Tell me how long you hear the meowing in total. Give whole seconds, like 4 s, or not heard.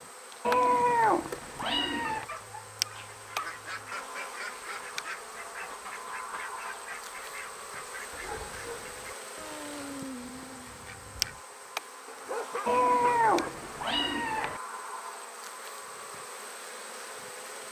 4 s.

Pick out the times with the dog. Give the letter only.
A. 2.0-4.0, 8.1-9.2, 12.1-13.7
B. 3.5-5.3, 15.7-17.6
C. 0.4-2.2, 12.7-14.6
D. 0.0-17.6
A.